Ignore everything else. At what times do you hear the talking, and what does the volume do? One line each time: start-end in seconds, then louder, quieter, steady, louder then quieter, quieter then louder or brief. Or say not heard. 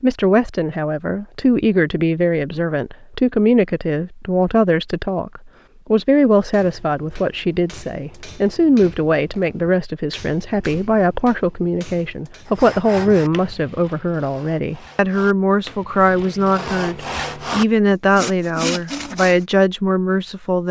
0.0-20.6 steady.